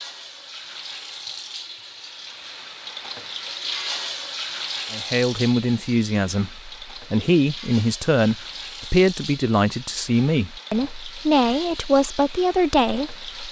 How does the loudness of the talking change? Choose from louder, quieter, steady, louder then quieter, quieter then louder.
steady.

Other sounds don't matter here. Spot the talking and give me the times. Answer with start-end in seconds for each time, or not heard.
4.9-13.4.